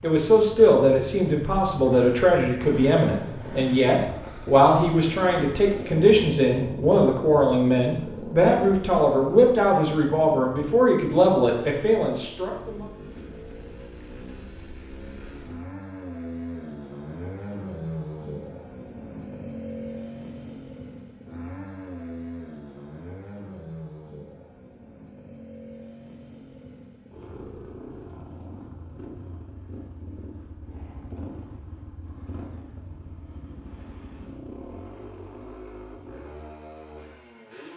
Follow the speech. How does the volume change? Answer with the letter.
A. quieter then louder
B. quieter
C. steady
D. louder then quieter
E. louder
C.